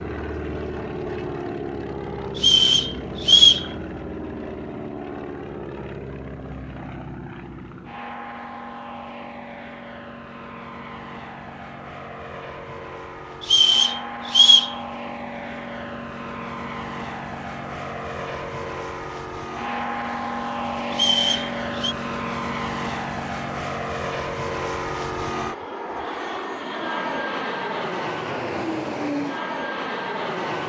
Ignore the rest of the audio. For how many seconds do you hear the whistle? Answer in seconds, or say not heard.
4 s.